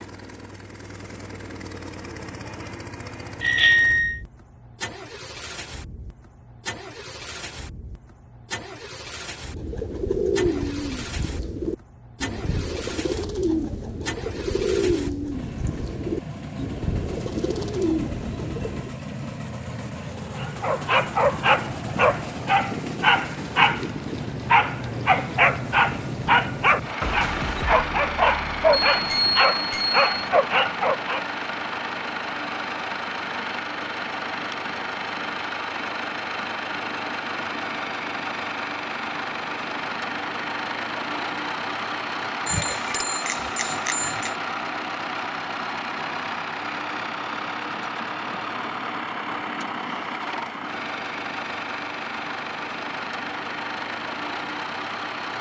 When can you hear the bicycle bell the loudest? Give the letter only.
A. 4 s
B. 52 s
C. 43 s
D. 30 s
A.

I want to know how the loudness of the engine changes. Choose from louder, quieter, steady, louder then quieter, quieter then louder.
louder.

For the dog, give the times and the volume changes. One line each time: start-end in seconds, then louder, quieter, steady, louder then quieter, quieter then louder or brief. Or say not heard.
20.4-31.2 steady.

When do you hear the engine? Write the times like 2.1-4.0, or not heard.
0.0-55.3.